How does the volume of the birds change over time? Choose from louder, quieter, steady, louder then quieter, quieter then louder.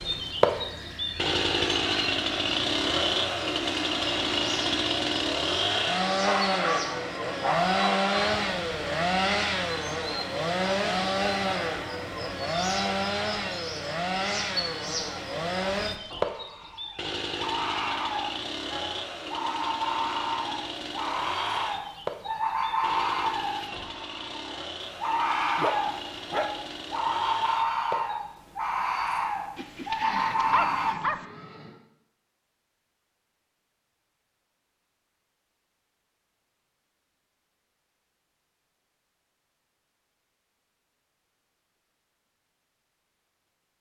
louder.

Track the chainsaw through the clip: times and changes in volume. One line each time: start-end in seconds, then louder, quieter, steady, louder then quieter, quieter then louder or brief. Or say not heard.
0.0-28.2 quieter.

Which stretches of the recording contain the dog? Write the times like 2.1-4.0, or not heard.
6.2-8.3, 25.5-26.6, 29.6-31.2.